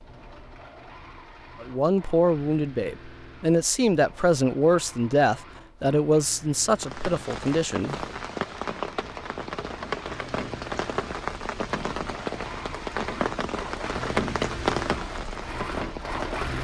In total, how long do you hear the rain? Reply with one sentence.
The rain can be heard for 10 seconds in total.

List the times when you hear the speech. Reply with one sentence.
You can hear the speech from 1.6 to 8.1 s.